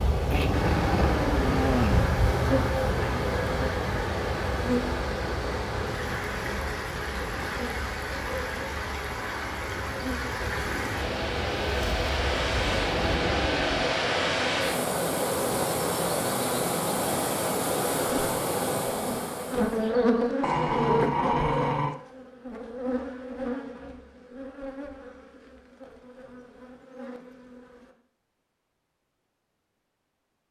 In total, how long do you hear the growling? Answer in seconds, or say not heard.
5 s.